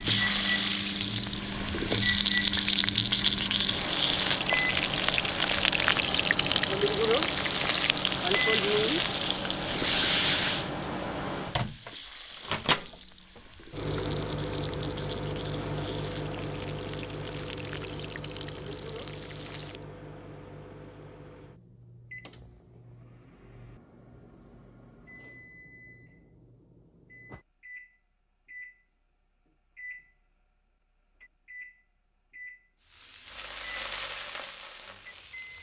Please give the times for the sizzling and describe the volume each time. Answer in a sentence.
You can hear the sizzling from 0.0 to 19.9 s, getting quieter; and briefly from 32.8 to 35.5 s.